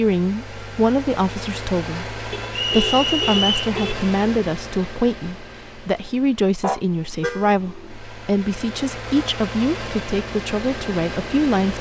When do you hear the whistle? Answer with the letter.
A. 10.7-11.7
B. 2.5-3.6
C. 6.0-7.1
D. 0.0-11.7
B.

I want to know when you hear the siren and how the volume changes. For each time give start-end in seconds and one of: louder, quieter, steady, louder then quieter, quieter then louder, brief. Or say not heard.
not heard.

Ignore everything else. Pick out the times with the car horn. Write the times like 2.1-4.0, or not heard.
2.3-4.1, 6.6-7.5.